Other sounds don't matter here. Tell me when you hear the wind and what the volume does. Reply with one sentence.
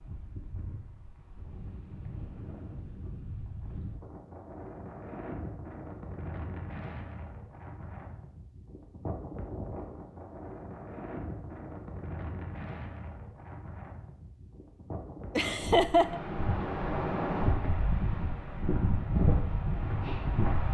You can hear the wind from 0.0 to 20.6 s, getting louder.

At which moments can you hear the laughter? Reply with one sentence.
You can hear the laughter from 15.3 to 16.2 s.